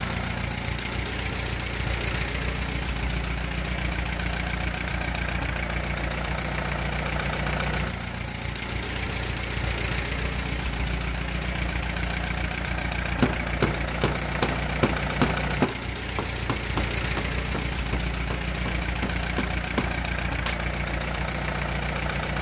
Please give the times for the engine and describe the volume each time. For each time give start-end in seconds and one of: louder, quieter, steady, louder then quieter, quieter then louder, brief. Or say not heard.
0.0-22.3 steady.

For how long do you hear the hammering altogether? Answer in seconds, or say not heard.
7 s.